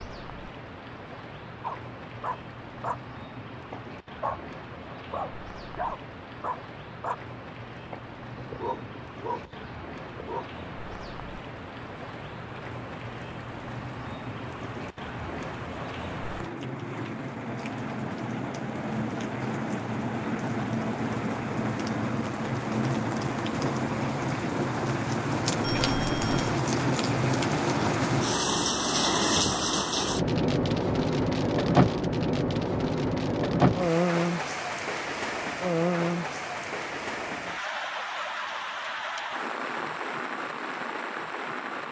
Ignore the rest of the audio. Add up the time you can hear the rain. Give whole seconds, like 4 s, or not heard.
42 s.